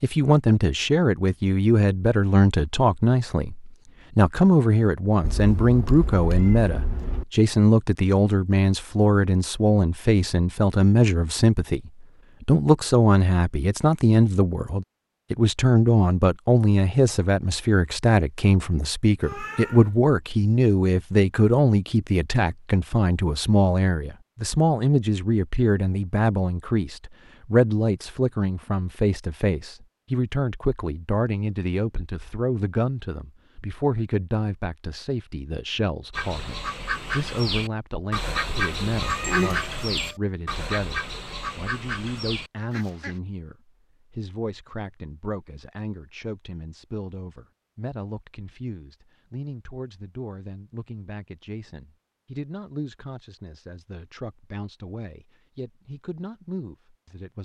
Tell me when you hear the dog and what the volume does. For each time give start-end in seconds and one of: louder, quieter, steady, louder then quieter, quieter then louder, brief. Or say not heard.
not heard.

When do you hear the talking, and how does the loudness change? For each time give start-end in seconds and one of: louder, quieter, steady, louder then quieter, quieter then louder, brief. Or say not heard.
0.0-57.4 quieter.